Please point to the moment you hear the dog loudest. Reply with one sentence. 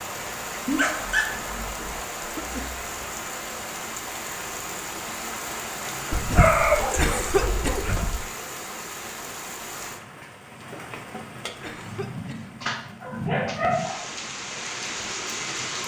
The loudest moment of the dog is at 7 seconds.